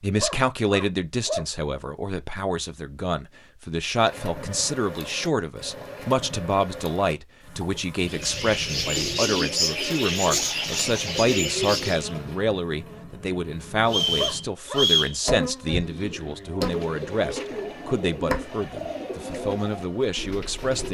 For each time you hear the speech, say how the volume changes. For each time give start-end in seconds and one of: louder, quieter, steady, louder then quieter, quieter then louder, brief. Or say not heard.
0.0-20.8 steady.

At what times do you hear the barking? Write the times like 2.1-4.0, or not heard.
0.1-1.4, 14.2-15.4.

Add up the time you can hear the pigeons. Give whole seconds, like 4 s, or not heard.
9 s.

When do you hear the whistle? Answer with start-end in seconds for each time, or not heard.
13.8-15.2.